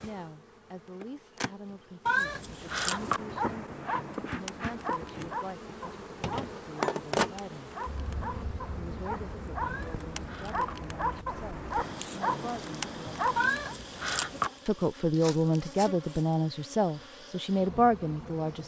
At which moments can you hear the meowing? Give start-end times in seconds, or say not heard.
2.0-3.2, 9.6-10.8, 13.3-14.5.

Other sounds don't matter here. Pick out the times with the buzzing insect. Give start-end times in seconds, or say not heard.
0.0-18.6.